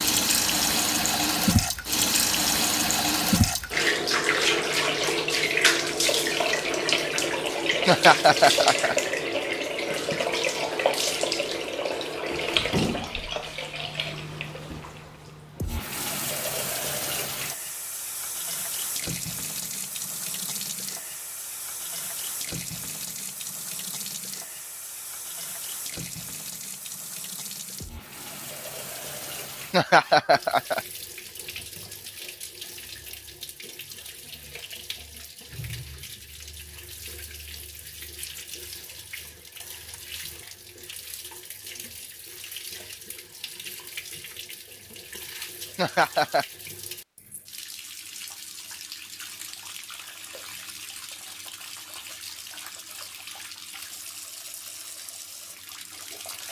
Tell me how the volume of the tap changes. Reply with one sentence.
The loudness of the tap goes down.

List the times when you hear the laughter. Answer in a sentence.
The laughter can be heard from 7.8 to 8.9 s, from 29.7 to 30.8 s and from 45.8 to 46.5 s.